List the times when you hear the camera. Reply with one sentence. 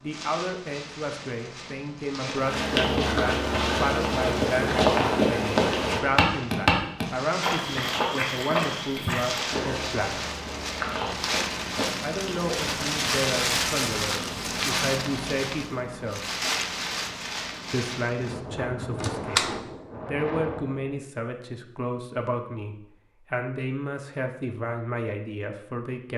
The camera can be heard from 19.0 to 19.5 s.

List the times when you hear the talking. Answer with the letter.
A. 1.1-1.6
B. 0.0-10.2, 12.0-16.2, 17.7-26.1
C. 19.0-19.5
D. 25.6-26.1
B.